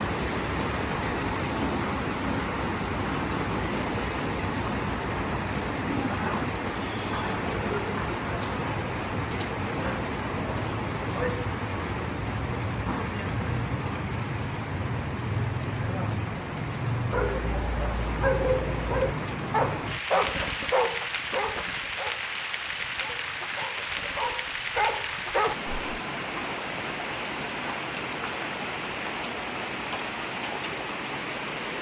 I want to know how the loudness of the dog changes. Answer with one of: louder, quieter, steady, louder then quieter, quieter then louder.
quieter then louder.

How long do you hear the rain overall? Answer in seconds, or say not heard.
32 s.